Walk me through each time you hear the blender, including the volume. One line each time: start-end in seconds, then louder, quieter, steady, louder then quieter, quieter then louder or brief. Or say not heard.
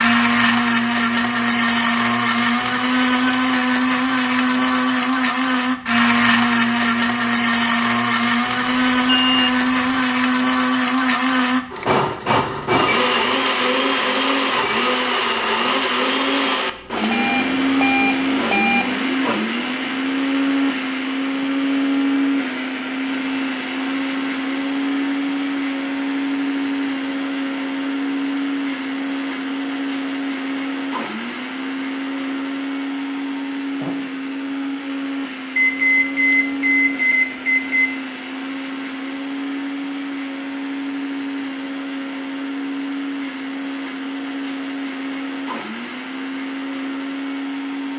0.0-47.9 quieter.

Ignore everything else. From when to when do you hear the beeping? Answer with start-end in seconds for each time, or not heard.
8.7-10.0, 16.9-18.9, 35.5-37.9.